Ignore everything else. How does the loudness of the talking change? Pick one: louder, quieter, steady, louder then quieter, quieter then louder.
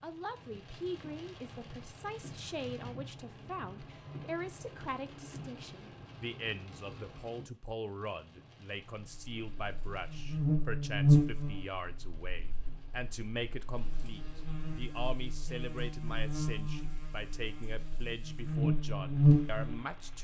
steady.